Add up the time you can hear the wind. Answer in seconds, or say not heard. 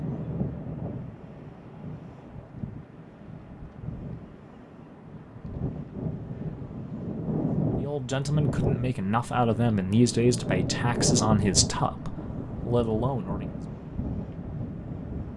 15 s.